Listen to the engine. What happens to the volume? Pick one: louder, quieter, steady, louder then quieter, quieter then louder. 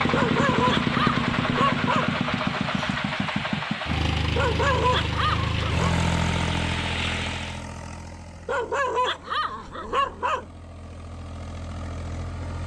quieter.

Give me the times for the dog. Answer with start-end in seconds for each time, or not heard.
0.1-2.1, 4.3-6.0, 8.4-10.4.